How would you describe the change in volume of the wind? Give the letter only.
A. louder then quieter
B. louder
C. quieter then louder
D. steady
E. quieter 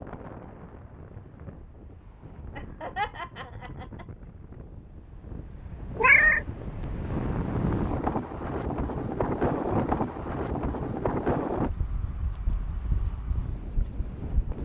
A.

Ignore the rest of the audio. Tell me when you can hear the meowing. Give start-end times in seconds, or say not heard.
6.0-6.8.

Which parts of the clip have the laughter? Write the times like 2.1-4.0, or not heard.
2.5-4.0.